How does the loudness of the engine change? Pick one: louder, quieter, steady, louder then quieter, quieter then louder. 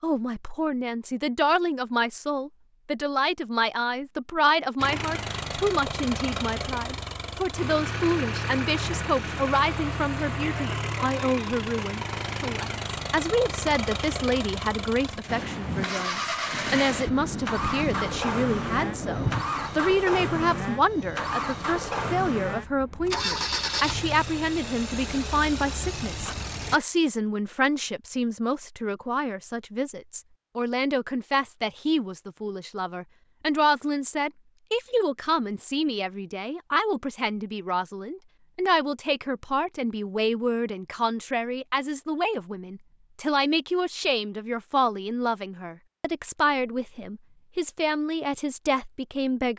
steady.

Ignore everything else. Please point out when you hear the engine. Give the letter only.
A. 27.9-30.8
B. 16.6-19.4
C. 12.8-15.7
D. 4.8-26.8
D.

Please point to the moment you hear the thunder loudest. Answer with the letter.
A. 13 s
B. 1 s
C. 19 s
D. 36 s
C.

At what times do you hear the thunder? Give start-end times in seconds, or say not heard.
16.6-19.4.